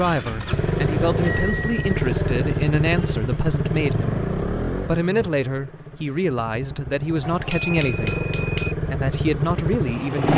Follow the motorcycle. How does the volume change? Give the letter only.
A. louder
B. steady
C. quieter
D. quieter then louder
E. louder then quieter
D.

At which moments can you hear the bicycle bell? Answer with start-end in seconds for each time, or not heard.
1.2-2.0, 7.2-8.8.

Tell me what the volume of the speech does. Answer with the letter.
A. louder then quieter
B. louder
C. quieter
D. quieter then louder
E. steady
E.